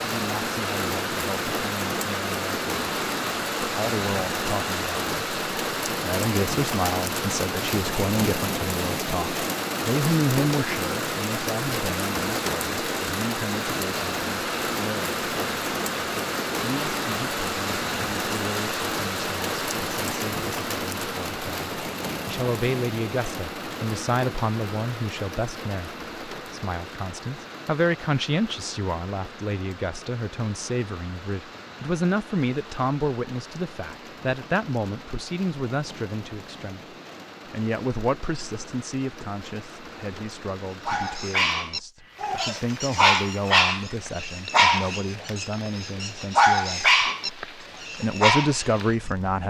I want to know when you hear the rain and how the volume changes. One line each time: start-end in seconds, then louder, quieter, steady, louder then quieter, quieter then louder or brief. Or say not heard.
0.0-49.4 quieter.